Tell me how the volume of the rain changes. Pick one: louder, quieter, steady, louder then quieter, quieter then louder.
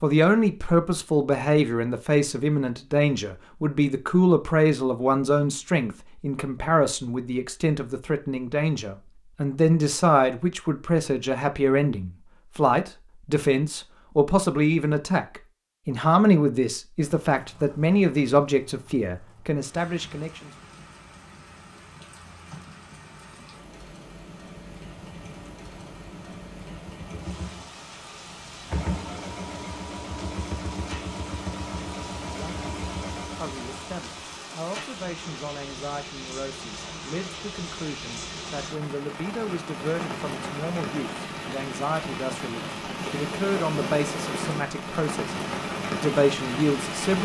louder.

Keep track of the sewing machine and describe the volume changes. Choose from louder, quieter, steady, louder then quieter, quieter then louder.
louder.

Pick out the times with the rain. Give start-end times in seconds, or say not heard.
17.2-47.2.